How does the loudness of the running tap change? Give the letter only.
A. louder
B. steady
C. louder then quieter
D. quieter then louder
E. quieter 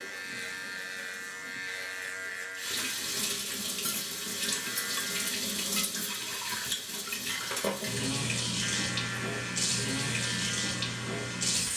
A.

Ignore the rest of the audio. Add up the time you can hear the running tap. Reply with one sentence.
You can hear the running tap for 12 seconds altogether.